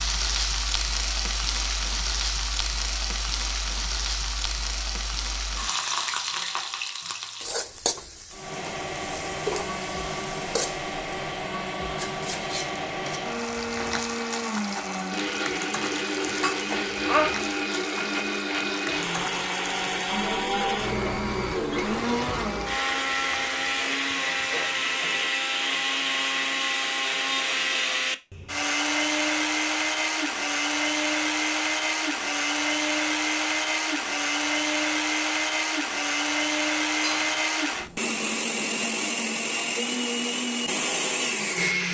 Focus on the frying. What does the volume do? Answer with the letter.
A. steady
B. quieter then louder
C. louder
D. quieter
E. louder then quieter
D.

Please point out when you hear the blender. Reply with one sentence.
You can hear the blender from 8.3 to 41.8 s.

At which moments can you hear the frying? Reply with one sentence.
You can hear the frying from 0.0 to 25.3 s.